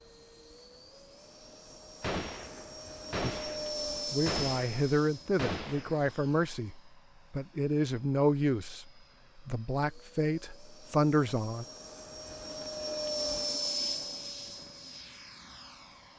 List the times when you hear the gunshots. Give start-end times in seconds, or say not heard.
2.0-6.3.